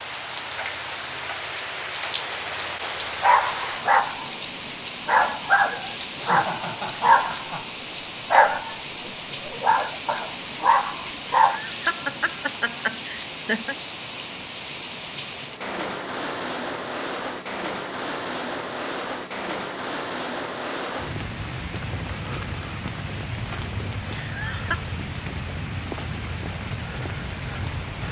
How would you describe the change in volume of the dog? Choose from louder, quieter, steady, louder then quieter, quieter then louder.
steady.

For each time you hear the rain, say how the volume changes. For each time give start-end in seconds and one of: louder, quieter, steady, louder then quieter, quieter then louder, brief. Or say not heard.
0.0-28.0 steady.